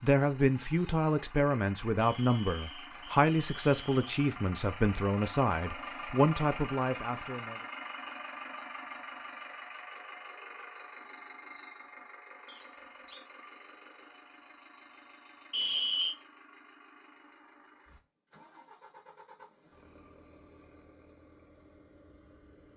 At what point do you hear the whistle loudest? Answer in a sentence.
The loudest moment of the whistle is at 16 seconds.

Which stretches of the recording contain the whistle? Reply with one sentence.
You can hear the whistle from 2.0 to 4.0 s, from 12.4 to 13.2 s and from 15.5 to 16.1 s.